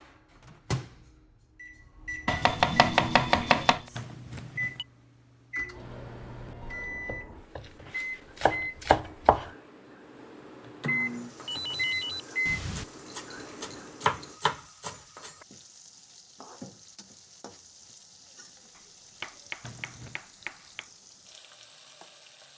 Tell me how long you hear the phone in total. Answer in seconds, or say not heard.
3 s.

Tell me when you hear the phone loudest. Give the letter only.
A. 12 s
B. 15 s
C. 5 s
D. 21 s
A.